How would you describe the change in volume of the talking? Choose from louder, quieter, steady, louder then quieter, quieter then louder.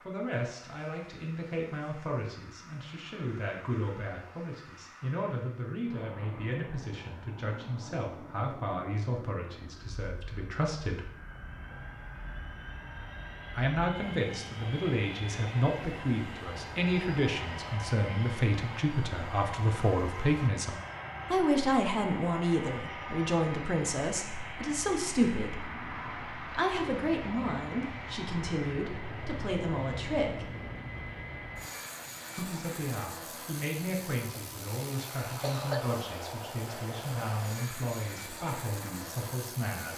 louder then quieter.